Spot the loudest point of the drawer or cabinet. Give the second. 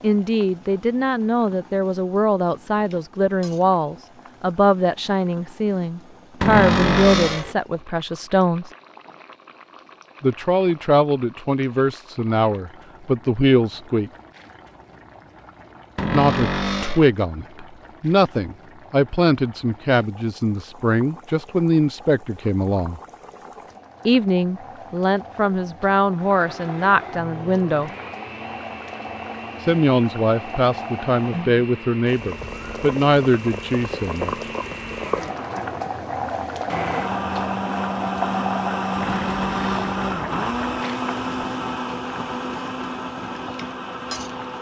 7 s.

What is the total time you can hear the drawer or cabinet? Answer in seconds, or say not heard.
3 s.